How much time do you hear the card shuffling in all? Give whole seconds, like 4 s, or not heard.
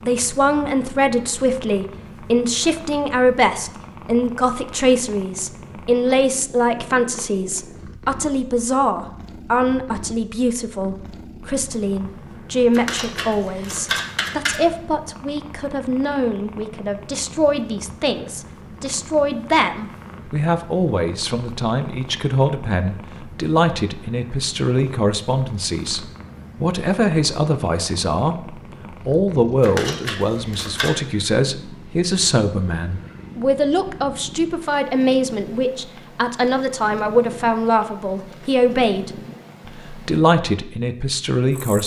3 s.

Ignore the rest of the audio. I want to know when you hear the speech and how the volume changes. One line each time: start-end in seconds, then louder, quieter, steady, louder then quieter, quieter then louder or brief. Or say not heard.
0.1-41.8 steady.